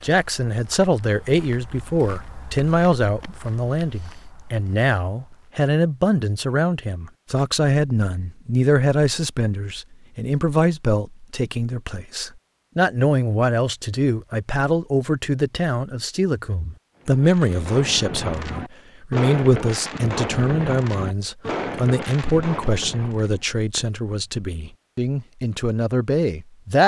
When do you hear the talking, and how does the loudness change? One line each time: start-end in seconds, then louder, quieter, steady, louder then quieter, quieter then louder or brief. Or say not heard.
0.0-26.8 steady.